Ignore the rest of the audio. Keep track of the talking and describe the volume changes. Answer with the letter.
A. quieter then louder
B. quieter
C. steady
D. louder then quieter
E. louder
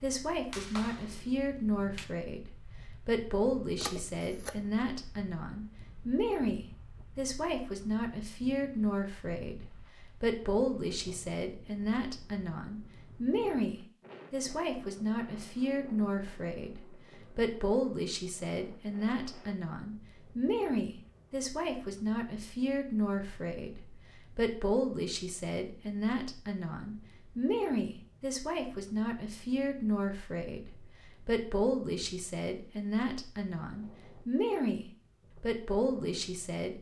C.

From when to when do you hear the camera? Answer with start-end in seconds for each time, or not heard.
3.8-4.6.